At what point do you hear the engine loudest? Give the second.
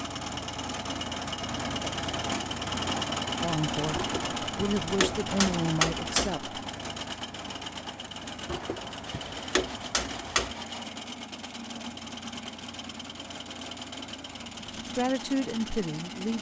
3 s.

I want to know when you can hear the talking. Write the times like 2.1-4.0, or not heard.
3.4-6.6, 14.9-16.3.